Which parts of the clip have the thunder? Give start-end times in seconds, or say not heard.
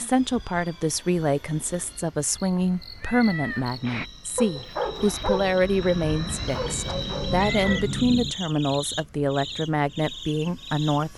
6.6-8.3.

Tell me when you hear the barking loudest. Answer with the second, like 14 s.
5 s.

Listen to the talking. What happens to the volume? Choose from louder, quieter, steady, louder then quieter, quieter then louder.
steady.